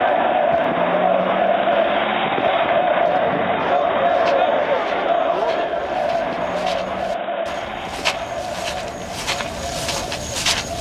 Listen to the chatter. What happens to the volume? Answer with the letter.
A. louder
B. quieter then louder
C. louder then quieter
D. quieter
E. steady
D.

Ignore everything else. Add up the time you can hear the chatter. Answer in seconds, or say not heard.
11 s.